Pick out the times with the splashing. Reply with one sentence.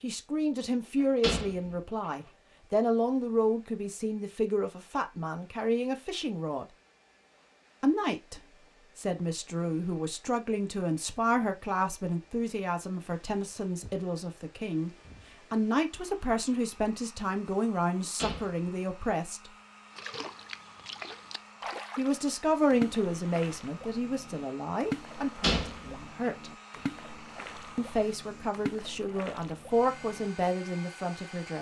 You can hear the splashing from 19.9 to 30.4 s.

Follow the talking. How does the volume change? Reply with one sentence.
The volume of the talking stays about the same.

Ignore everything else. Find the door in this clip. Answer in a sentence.
The door can be heard from 1.0 to 1.8 s, from 17.9 to 18.6 s and from 25.2 to 26.3 s.